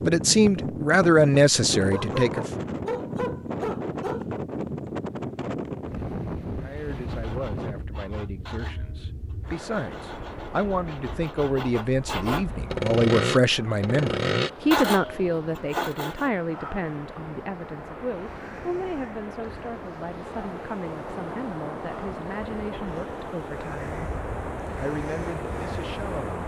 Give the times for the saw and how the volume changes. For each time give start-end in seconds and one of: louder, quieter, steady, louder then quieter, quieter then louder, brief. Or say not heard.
6.7-16.3 louder.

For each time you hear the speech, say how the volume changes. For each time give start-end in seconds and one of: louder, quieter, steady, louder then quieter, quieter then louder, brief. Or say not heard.
0.0-2.5 brief
6.6-24.1 louder then quieter
24.8-26.4 brief.